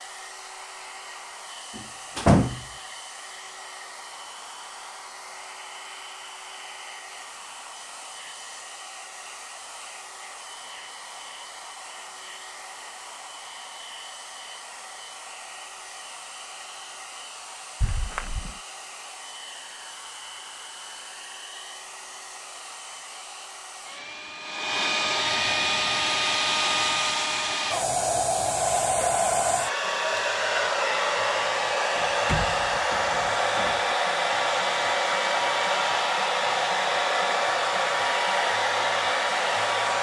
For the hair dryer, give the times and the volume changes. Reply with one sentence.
The hair dryer can be heard from 0.0 to 39.9 s, getting louder.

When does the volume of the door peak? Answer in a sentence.
The volume of the door peaks at 2 seconds.